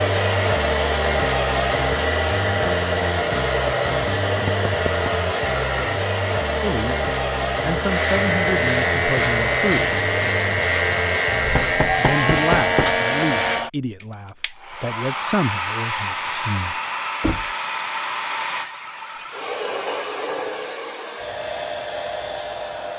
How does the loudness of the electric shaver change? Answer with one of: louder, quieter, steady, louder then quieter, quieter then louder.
steady.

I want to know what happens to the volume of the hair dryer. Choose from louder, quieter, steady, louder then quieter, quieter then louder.
quieter.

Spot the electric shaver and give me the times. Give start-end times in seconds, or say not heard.
7.8-13.7.